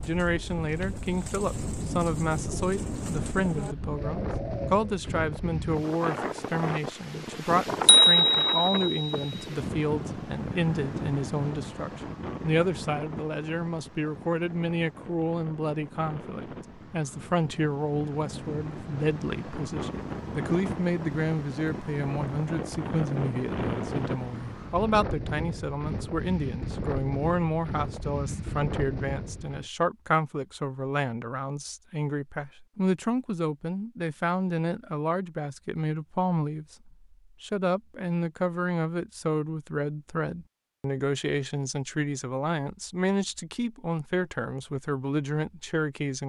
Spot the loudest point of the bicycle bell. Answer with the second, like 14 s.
8 s.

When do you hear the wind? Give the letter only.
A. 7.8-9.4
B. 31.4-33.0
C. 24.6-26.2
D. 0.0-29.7
D.